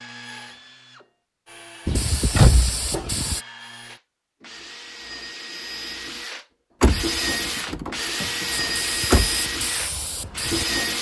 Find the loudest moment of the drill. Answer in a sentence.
The volume of the drill peaks at 9 seconds.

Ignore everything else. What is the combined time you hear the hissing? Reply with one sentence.
The hissing can be heard for 4 seconds in total.